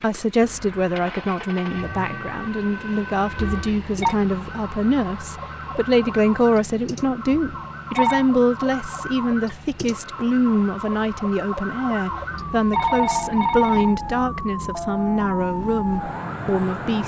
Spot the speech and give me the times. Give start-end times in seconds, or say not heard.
0.0-17.0.